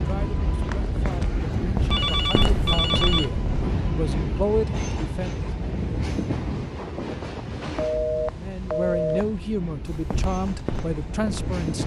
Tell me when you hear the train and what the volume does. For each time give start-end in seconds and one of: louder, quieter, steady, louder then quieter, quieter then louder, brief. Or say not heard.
0.0-11.8 quieter.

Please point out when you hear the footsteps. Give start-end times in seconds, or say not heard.
0.0-3.7, 9.8-11.6.